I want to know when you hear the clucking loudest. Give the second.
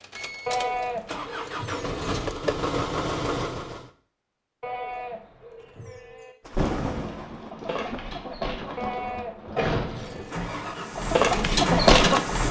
12 s.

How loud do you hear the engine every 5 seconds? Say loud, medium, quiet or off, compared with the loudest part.
loud, off, loud.